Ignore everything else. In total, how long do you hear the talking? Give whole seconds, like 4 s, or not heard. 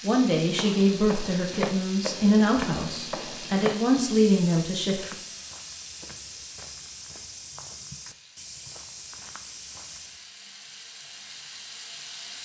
5 s.